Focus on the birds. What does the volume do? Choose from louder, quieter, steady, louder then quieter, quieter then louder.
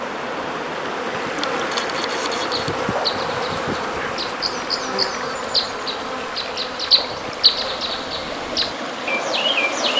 louder.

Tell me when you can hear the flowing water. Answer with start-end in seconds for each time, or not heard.
0.0-9.9.